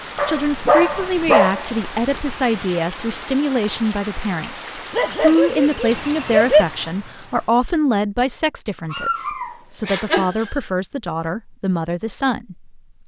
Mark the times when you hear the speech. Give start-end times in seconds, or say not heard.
0.2-12.8.